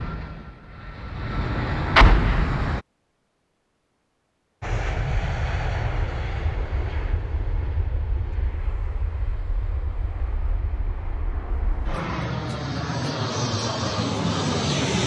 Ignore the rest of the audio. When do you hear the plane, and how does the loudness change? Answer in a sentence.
The plane can be heard briefly from 0.0 to 2.9 s; and from 4.6 to 15.0 s, getting quieter then louder.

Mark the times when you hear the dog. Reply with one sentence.
The dog can't be heard in this clip.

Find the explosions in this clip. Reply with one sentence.
You can hear the explosions from 1.9 to 2.8 s.